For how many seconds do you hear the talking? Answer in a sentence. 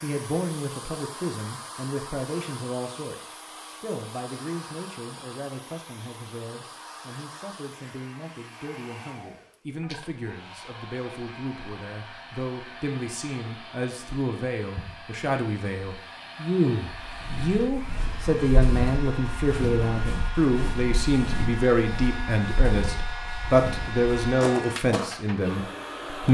You can hear the talking for 26 seconds altogether.